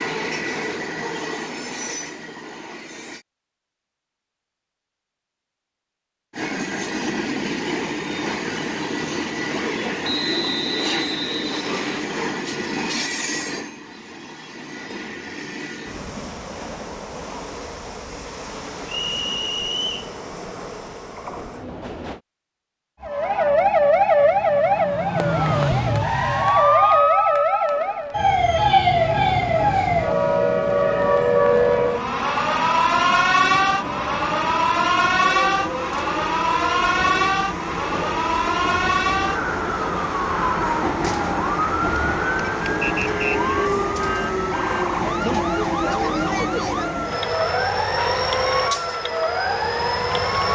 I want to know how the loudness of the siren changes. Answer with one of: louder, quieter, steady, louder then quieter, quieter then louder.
quieter.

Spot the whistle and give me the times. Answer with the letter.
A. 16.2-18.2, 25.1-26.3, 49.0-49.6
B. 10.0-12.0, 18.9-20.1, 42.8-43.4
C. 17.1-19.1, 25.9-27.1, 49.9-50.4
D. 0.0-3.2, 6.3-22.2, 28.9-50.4
B.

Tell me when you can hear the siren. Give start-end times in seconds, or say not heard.
23.0-50.4.